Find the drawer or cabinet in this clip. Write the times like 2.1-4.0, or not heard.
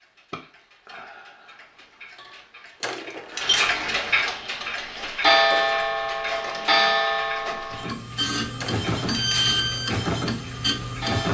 2.8-3.8, 8.6-9.6.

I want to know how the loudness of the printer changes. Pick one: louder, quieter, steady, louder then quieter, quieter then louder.
louder.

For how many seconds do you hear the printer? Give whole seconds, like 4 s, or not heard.
7 s.